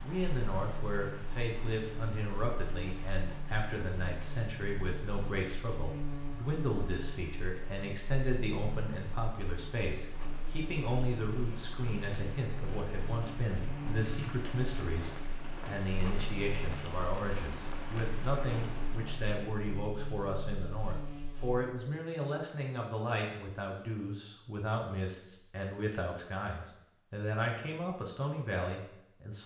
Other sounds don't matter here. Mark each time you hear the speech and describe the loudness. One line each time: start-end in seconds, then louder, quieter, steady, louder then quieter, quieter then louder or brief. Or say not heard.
0.0-29.4 steady.